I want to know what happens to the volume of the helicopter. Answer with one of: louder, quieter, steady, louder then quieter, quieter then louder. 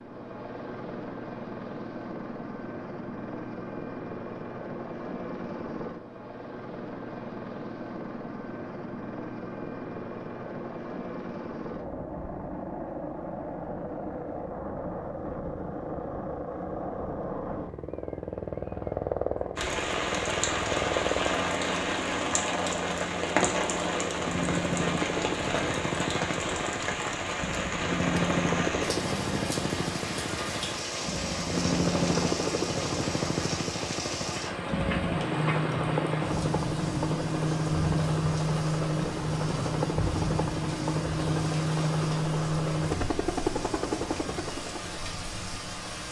louder.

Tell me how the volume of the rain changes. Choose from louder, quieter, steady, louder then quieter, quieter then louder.
quieter.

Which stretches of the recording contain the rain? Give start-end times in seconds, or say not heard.
19.6-46.0.